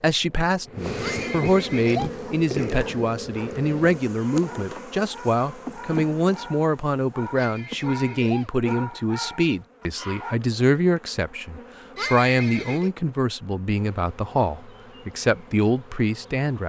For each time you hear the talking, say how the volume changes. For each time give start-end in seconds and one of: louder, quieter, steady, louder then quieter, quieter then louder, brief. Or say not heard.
0.0-16.6 steady.